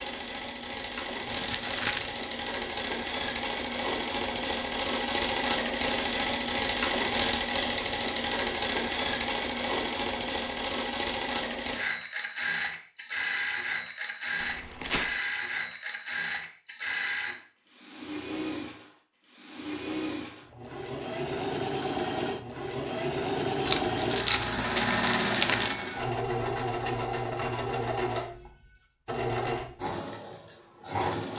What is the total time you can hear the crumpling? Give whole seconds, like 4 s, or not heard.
4 s.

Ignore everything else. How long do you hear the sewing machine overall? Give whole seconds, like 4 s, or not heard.
31 s.